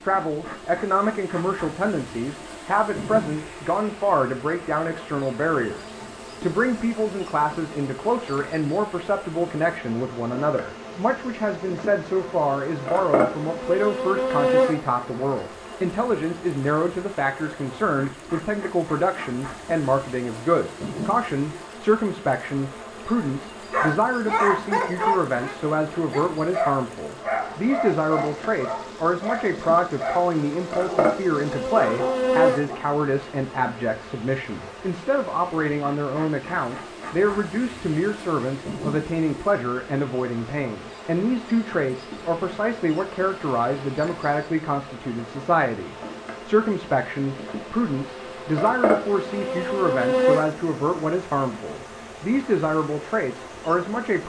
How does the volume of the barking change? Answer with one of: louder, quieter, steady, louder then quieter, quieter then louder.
quieter.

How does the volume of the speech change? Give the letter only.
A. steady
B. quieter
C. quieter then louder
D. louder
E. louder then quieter
A.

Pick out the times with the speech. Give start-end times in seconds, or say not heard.
0.0-54.2.